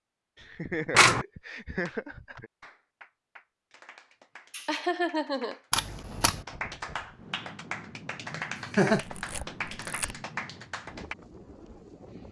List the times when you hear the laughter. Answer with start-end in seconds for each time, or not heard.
0.3-2.5, 4.5-6.0, 8.3-9.1.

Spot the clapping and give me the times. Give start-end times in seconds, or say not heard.
1.4-11.2.